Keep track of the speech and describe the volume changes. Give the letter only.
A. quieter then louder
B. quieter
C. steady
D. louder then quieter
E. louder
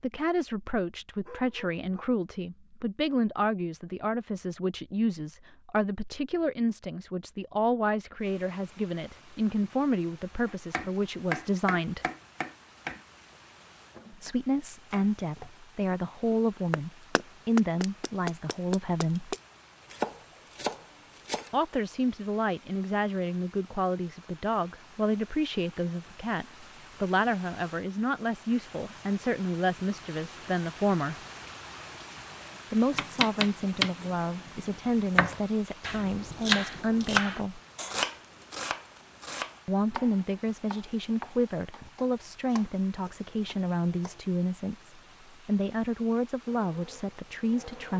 C.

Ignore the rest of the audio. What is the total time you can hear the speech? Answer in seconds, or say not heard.
40 s.